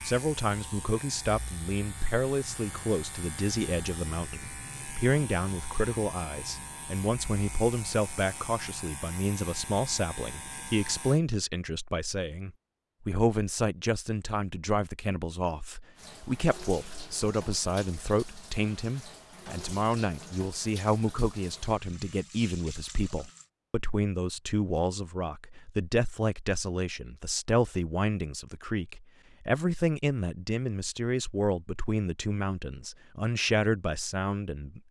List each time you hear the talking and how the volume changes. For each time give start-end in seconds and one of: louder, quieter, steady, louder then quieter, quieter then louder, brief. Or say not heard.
0.0-34.8 steady.